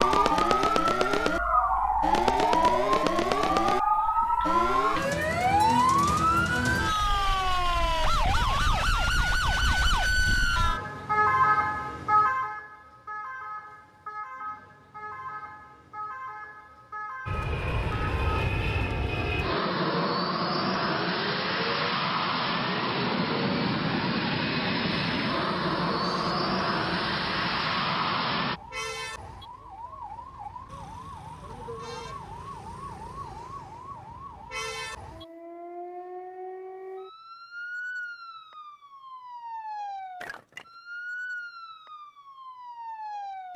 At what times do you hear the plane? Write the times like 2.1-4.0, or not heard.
17.2-28.6.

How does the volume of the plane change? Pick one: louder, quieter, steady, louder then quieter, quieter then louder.
steady.